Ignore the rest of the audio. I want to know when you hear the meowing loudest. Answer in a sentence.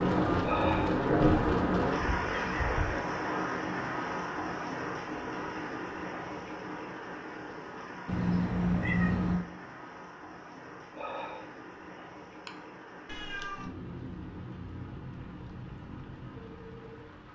The loudest moment of the meowing is at 9 seconds.